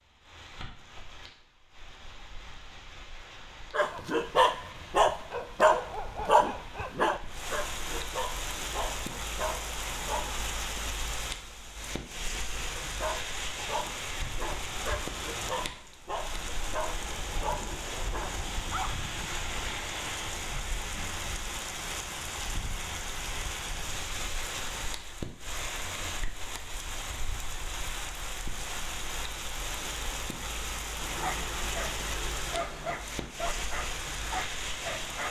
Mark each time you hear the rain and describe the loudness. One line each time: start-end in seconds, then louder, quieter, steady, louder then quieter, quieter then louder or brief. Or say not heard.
0.0-35.2 louder.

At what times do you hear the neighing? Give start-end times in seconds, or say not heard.
30.9-33.0.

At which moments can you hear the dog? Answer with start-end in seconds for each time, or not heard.
3.7-10.4, 12.8-19.3, 31.1-35.2.